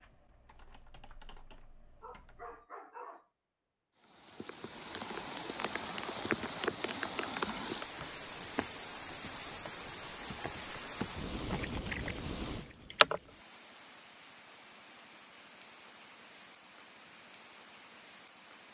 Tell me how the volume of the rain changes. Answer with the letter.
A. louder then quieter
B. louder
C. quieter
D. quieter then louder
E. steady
C.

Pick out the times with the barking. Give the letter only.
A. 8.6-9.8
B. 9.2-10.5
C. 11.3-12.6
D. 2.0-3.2
D.